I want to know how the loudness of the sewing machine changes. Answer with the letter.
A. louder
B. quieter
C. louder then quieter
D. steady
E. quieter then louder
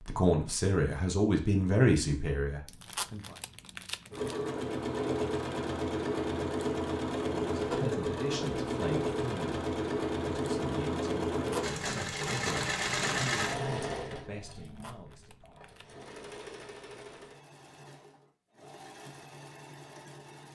B.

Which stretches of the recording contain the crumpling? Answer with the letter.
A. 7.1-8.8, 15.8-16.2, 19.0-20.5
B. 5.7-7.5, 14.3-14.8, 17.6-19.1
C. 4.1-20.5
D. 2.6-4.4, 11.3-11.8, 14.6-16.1
D.